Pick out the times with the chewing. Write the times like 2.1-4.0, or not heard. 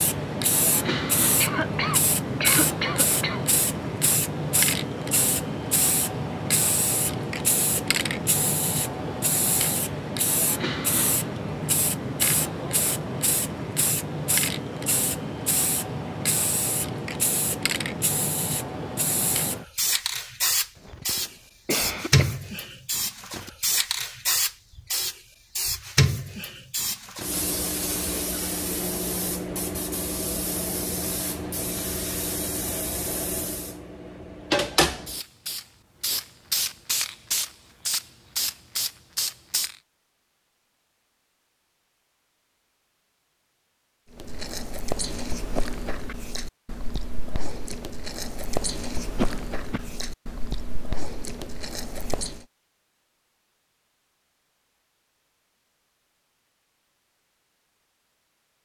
44.1-52.4.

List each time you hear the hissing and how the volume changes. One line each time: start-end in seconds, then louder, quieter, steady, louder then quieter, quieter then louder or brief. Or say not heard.
0.0-39.8 steady.